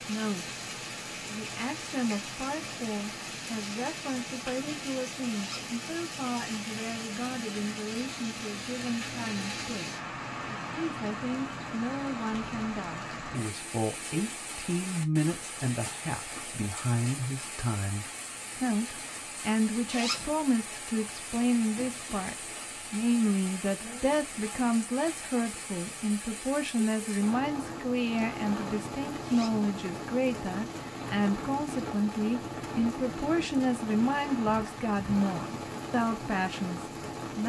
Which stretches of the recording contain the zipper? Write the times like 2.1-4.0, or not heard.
5.3-5.8, 19.9-20.4, 29.2-29.6.